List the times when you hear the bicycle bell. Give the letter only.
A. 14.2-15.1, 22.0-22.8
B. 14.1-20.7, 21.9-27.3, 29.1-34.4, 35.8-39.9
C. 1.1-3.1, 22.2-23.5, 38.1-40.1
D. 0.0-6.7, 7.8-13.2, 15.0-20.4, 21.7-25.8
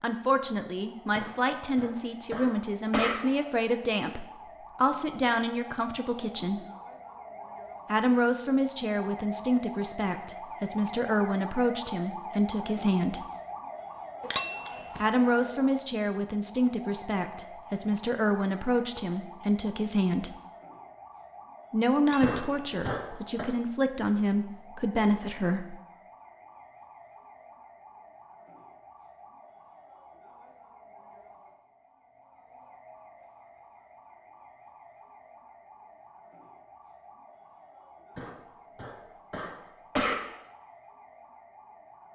A.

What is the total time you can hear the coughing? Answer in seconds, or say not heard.
5 s.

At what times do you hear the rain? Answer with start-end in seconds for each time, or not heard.
not heard.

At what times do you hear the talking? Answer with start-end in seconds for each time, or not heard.
0.0-6.7, 7.8-13.2, 15.0-20.4, 21.7-25.8.